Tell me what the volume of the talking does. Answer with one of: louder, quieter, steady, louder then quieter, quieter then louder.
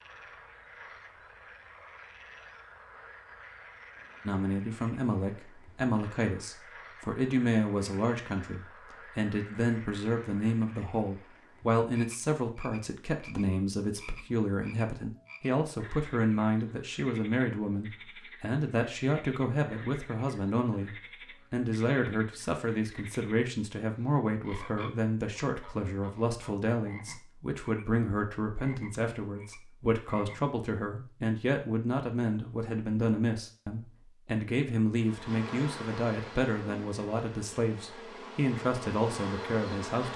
steady.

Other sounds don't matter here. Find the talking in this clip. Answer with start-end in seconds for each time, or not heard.
4.2-40.1.